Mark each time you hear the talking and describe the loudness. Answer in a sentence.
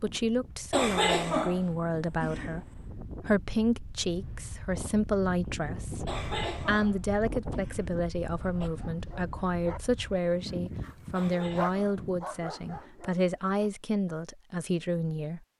You can hear the talking from 0.0 to 15.4 s, at a steady volume.